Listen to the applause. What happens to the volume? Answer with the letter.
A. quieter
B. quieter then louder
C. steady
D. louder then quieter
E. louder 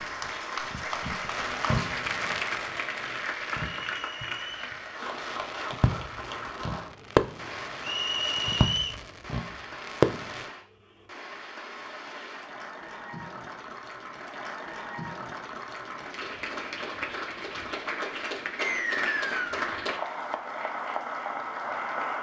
B.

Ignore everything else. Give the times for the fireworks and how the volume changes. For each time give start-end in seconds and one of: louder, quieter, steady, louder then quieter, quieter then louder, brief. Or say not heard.
1.3-10.5 quieter then louder.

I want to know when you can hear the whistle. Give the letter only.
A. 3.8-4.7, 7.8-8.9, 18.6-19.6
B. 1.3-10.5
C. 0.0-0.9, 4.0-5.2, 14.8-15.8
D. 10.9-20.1
A.